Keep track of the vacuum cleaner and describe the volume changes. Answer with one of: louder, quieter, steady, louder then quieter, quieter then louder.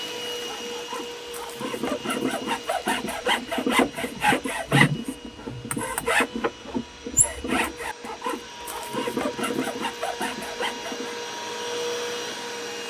quieter then louder.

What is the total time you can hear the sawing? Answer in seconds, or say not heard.
11 s.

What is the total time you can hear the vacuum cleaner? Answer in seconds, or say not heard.
13 s.